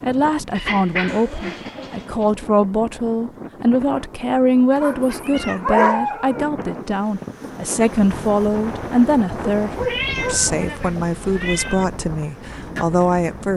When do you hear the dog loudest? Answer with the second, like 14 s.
6 s.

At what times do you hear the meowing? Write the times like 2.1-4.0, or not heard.
1.1-1.7, 4.9-5.7, 9.8-11.8.